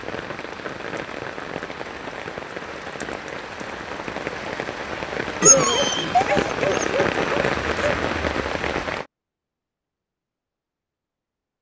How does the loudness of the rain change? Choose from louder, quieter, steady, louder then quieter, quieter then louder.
louder.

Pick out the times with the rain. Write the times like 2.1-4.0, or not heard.
0.0-9.1.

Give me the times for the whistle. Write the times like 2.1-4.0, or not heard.
5.7-6.2.